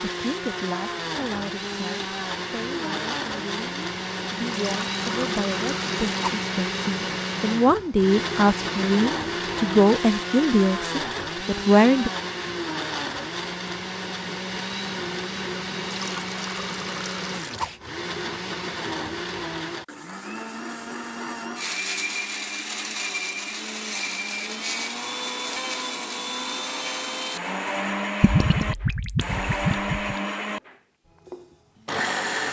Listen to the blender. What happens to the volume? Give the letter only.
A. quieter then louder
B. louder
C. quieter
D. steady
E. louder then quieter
D.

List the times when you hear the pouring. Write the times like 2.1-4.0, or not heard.
4.5-6.5, 15.8-17.8, 28.2-30.1.